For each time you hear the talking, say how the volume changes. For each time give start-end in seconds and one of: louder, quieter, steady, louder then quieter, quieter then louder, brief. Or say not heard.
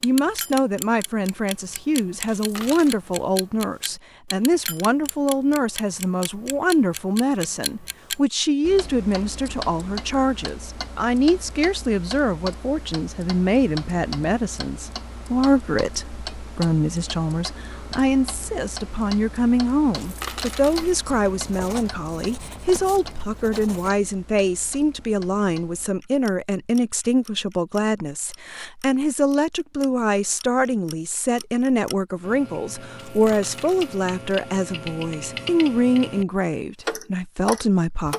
0.0-38.1 steady.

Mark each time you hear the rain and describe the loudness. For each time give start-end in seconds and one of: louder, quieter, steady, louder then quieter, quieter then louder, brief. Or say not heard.
not heard.